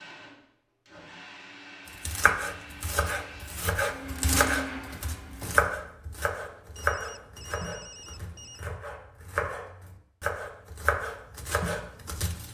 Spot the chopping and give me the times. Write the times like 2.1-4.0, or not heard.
2.0-12.5.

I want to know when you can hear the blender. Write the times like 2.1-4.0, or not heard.
0.0-5.5.